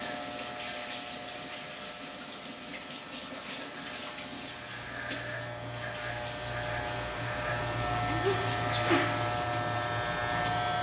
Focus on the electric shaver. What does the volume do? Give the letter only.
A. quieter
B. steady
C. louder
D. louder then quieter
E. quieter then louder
C.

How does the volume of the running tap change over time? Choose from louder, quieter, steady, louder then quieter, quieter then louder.
steady.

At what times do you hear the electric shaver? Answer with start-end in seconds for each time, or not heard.
0.0-10.7.